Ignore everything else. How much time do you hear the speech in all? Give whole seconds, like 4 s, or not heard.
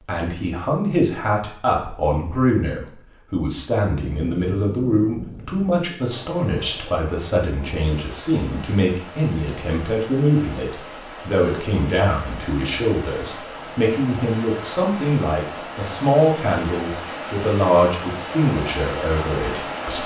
20 s.